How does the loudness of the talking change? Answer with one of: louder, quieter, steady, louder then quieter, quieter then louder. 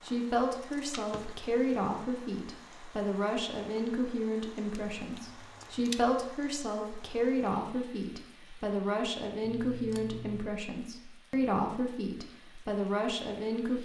steady.